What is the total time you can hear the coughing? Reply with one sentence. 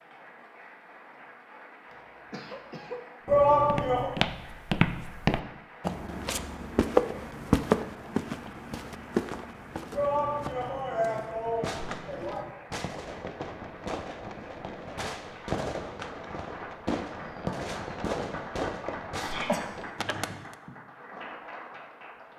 You can hear the coughing for 2 seconds altogether.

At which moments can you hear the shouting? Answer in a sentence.
You can hear the shouting from 3.2 to 4.1 s, from 9.9 to 12.5 s and from 19.1 to 19.6 s.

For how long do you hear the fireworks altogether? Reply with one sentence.
You can hear the fireworks for 9 seconds altogether.